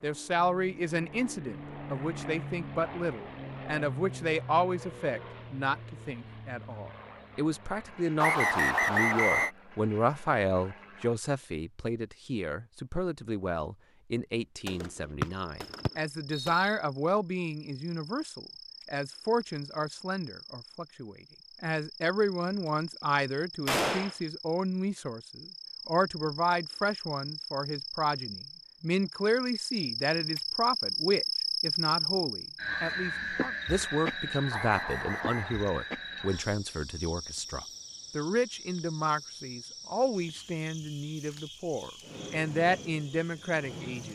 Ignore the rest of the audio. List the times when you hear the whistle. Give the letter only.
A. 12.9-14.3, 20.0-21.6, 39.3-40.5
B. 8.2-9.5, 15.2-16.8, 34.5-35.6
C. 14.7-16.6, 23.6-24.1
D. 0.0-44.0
B.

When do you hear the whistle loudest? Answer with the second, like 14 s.
9 s.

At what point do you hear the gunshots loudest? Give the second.
24 s.